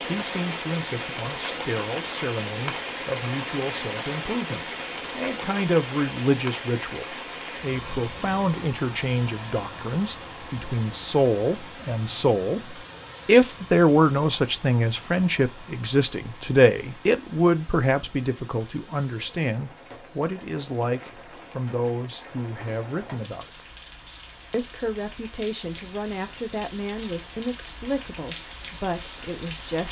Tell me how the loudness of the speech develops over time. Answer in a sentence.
The loudness of the speech goes up, then down.